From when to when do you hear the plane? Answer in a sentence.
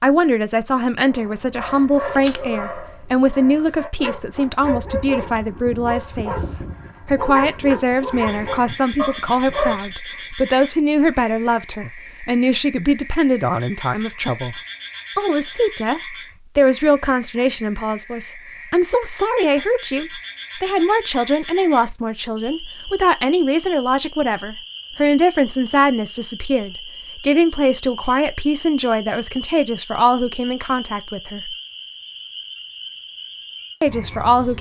You can't hear the plane here.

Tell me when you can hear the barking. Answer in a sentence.
The barking can be heard from 1.1 to 9.8 s.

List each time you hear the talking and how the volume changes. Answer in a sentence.
You can hear the talking from 0.0 to 31.6 s, at a steady volume; and briefly from 33.8 to 34.5 s.